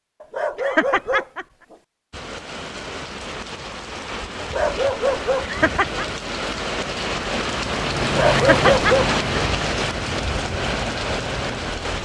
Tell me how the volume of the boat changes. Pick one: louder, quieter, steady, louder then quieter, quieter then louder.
quieter.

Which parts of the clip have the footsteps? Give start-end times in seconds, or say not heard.
not heard.